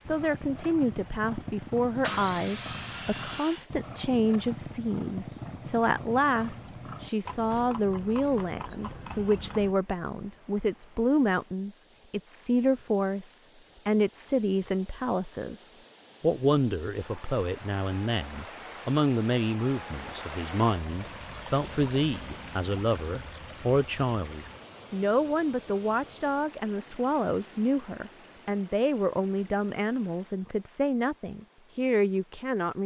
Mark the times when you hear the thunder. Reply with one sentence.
The thunder can't be heard in this clip.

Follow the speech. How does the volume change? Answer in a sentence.
The volume of the speech stays about the same.